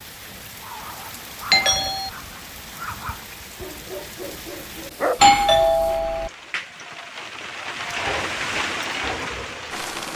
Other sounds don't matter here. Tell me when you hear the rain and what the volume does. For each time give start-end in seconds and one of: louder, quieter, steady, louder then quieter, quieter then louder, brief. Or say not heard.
0.0-10.1 louder.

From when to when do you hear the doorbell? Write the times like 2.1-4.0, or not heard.
1.5-2.1, 5.2-6.3.